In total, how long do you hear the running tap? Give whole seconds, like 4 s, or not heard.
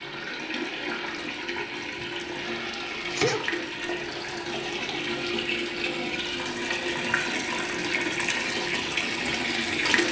10 s.